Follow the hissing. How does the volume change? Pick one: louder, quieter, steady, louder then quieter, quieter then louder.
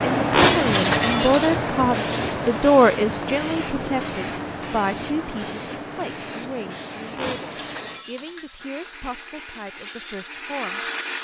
quieter.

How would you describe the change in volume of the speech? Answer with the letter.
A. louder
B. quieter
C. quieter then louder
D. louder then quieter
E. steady
B.